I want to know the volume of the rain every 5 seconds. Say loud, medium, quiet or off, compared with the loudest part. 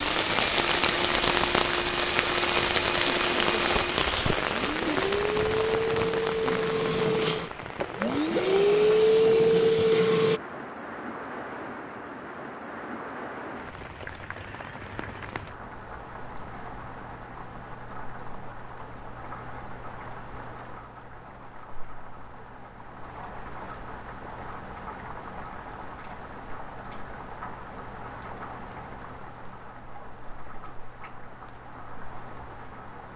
loud, medium, quiet, quiet, quiet, quiet, quiet.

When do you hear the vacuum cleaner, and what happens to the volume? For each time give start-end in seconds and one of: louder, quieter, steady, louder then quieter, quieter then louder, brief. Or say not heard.
0.0-10.4 louder.